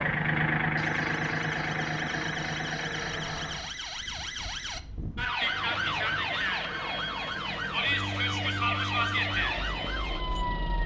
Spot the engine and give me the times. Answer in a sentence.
You can hear the engine from 0.0 to 3.8 s and from 5.3 to 10.8 s.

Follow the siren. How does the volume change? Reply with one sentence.
The volume of the siren goes up.